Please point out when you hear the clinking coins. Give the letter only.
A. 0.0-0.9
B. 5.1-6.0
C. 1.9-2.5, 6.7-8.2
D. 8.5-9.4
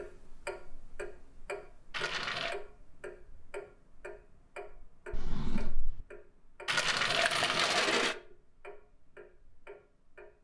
C.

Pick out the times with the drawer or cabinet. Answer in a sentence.
The drawer or cabinet can be heard from 5.1 to 6.0 s.